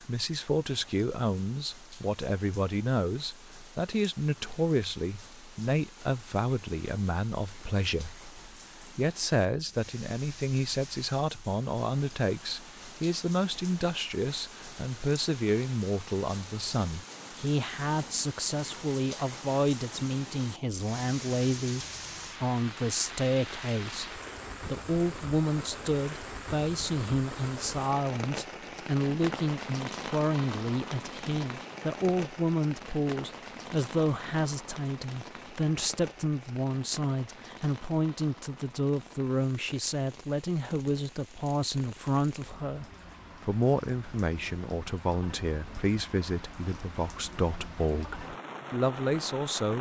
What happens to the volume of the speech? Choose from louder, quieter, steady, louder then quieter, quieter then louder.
steady.